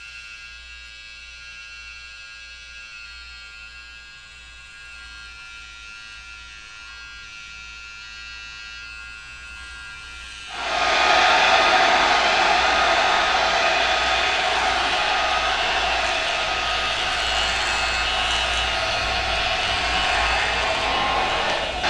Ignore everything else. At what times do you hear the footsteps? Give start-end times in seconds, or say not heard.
not heard.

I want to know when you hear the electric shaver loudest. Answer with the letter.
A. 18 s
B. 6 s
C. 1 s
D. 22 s
A.